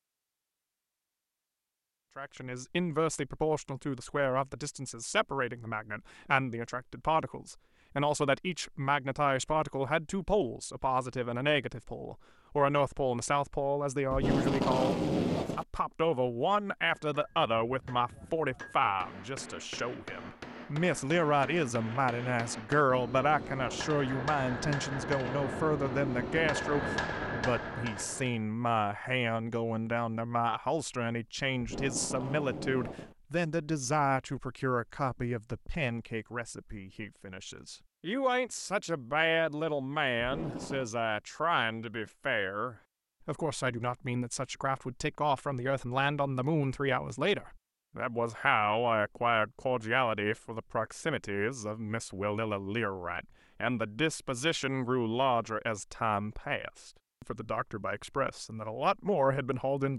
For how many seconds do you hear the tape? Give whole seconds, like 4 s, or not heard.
4 s.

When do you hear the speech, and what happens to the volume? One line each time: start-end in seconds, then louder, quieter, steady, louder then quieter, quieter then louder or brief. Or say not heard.
2.1-59.9 steady.